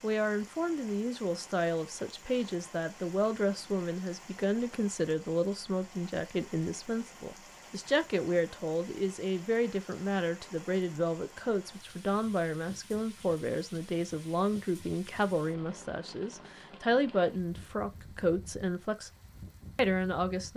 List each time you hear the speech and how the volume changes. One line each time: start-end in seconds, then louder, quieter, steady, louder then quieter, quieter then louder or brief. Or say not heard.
0.0-19.1 steady
19.8-20.5 brief.